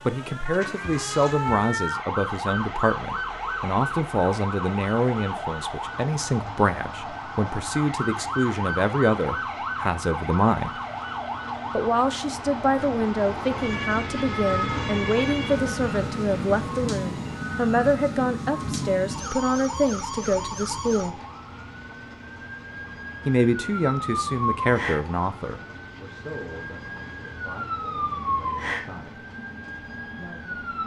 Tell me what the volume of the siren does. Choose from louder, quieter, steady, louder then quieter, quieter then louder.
steady.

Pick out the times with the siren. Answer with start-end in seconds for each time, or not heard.
0.0-30.8.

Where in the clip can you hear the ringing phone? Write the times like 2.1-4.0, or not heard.
not heard.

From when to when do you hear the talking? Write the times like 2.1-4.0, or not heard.
0.1-10.8, 11.7-21.1, 23.2-29.2, 30.1-30.6.